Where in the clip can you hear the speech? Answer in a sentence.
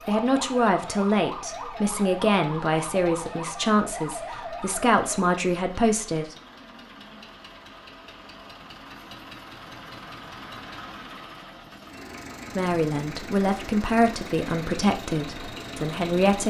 You can hear the speech from 0.1 to 6.3 s and from 12.6 to 16.4 s.